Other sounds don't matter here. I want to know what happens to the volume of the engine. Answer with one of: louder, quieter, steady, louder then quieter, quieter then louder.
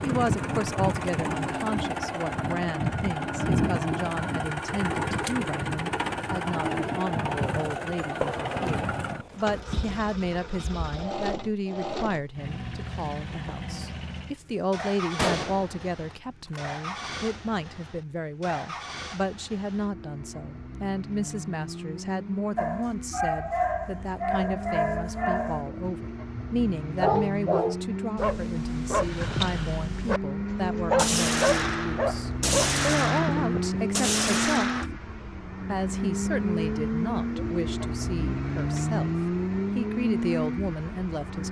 quieter then louder.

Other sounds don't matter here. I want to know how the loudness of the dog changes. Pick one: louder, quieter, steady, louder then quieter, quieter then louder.
steady.